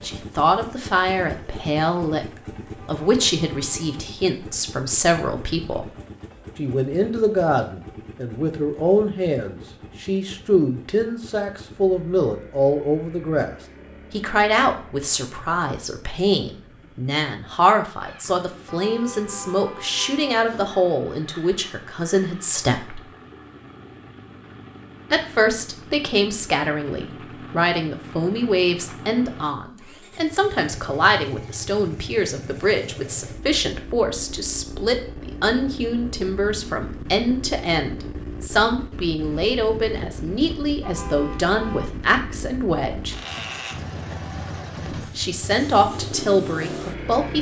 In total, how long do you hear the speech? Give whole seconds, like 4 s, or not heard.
43 s.